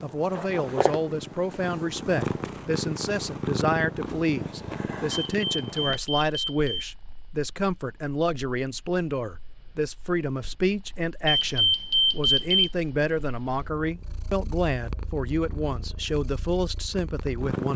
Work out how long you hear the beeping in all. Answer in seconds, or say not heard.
3 s.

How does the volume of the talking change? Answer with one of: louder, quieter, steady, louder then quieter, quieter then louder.
steady.